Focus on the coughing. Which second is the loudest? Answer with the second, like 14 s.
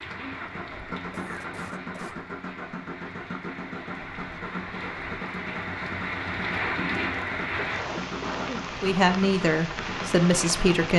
8 s.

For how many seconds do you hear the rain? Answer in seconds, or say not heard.
11 s.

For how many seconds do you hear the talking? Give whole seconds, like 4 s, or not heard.
2 s.